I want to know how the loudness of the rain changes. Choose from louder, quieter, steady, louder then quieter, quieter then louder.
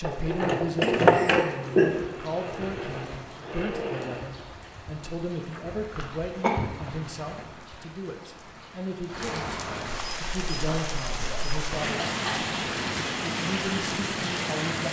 louder.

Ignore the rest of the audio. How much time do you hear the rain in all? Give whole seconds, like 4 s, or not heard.
15 s.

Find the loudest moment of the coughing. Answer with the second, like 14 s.
2 s.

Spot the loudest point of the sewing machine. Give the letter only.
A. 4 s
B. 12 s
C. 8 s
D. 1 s
D.